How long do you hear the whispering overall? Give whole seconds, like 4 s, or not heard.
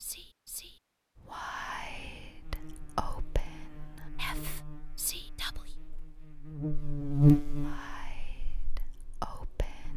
8 s.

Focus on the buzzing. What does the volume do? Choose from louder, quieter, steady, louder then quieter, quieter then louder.
louder then quieter.